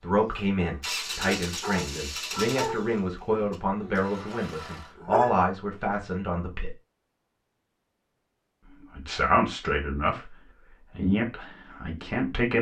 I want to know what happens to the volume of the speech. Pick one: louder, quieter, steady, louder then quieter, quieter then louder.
steady.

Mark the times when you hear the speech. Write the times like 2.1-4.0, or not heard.
0.0-6.7, 8.8-12.5.